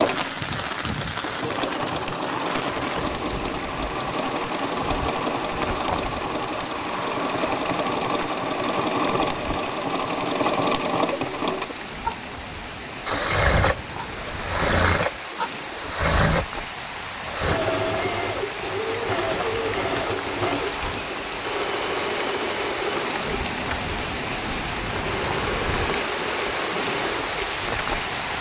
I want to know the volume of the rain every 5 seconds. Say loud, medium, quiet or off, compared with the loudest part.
loud, medium, medium, medium, loud, loud.